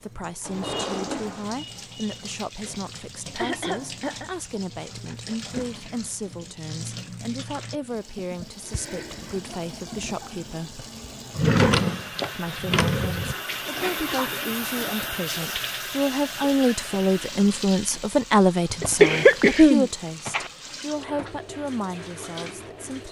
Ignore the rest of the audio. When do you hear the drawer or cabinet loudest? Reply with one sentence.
The volume of the drawer or cabinet peaks at 12 seconds.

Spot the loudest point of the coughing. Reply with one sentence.
The loudest moment of the coughing is at 19 seconds.